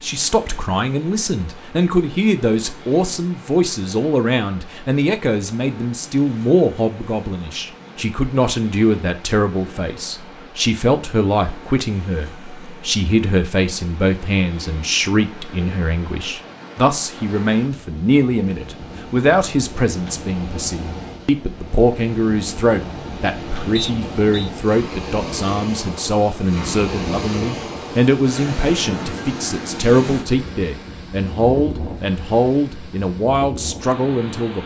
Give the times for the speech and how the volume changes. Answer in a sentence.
You can hear the speech from 0.0 to 34.6 s, at a steady volume.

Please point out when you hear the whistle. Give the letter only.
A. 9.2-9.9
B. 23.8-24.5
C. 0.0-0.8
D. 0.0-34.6
B.